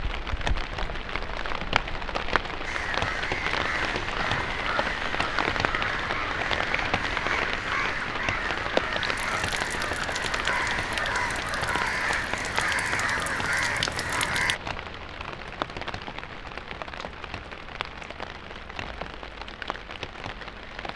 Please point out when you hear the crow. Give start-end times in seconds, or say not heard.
2.6-14.6.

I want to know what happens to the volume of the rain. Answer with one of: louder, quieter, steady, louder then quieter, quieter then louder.
quieter.